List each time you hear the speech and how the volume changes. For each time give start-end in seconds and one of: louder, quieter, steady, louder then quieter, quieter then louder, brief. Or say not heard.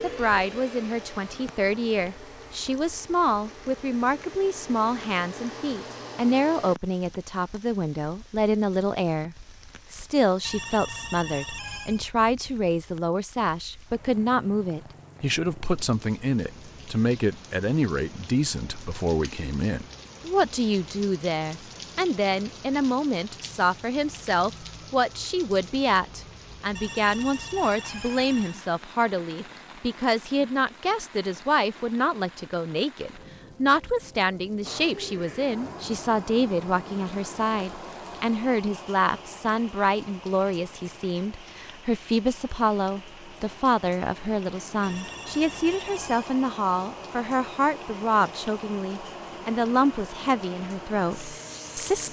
0.0-52.0 steady.